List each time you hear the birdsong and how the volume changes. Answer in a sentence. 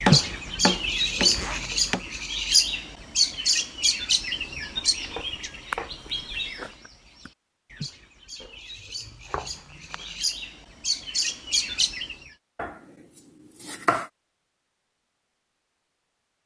You can hear the birdsong from 0.0 to 12.2 s, getting quieter then louder.